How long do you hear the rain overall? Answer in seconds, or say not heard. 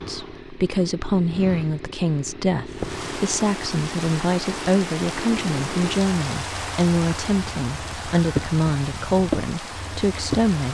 8 s.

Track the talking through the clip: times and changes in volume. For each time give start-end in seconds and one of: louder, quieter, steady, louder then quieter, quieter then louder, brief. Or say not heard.
0.1-10.6 steady.